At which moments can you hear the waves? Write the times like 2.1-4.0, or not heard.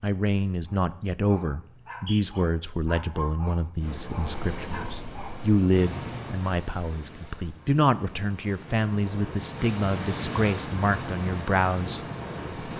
3.8-12.7.